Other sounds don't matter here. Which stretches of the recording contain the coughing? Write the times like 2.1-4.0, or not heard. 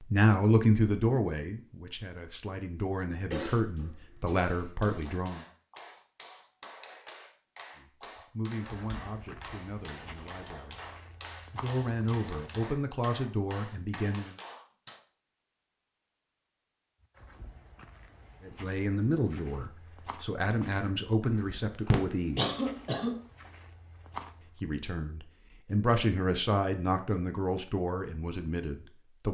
3.3-5.0, 21.9-23.1.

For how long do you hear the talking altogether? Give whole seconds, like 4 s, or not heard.
20 s.